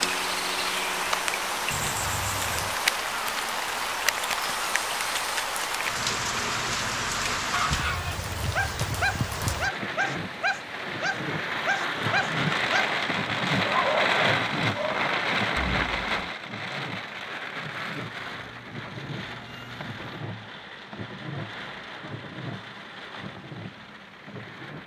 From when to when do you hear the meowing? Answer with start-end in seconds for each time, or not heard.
1.7-2.8, 18.2-20.2.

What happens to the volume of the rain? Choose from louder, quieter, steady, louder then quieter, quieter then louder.
quieter.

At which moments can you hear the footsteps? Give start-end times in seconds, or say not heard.
not heard.